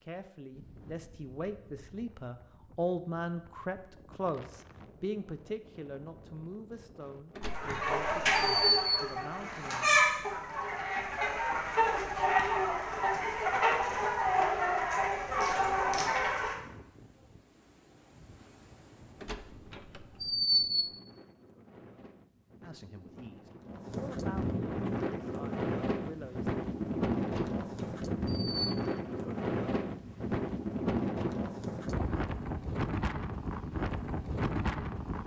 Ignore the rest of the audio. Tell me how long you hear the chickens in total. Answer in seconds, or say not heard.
9 s.